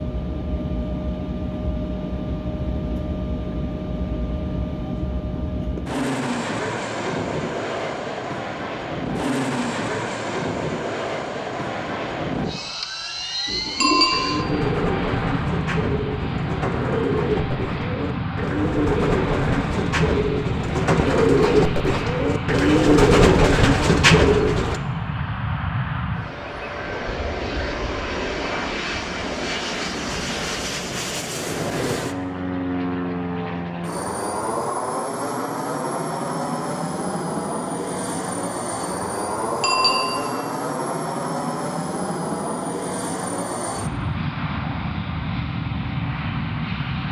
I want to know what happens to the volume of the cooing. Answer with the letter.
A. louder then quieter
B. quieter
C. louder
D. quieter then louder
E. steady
C.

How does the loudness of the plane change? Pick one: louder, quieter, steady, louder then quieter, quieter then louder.
steady.